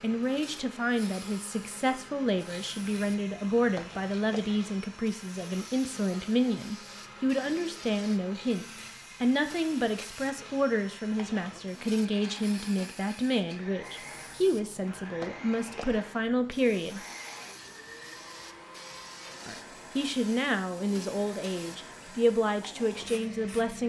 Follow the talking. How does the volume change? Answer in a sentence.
The volume of the talking stays about the same.